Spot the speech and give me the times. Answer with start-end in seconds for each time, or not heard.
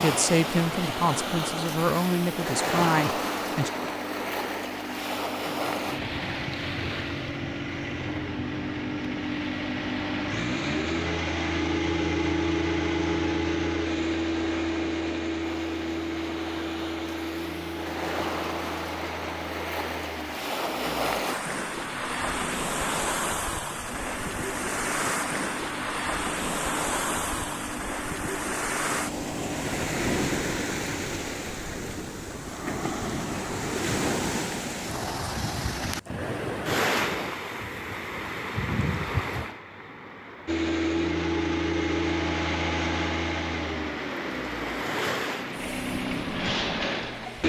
0.0-3.7.